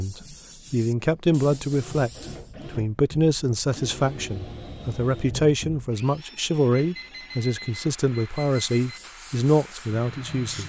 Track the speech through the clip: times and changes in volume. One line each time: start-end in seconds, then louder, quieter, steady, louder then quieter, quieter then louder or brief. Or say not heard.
0.0-10.6 steady.